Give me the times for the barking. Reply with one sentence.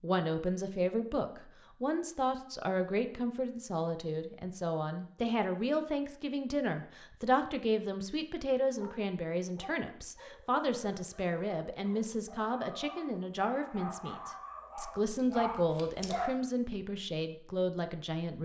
The barking can be heard from 8.8 to 16.3 s.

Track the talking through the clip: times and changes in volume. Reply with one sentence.
You can hear the talking from 0.0 to 18.4 s, at a steady volume.